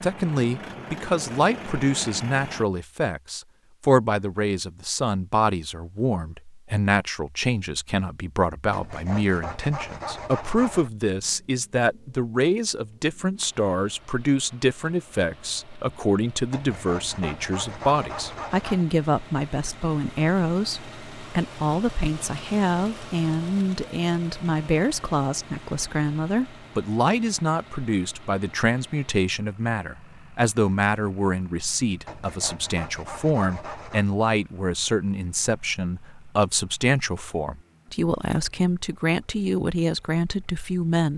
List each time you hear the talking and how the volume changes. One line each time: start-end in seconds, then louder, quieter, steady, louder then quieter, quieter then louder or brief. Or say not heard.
0.0-41.1 steady.